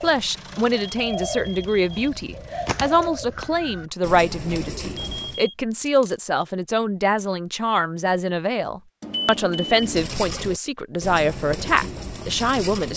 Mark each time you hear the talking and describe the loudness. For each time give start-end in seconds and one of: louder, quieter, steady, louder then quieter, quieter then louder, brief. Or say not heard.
0.0-12.9 steady.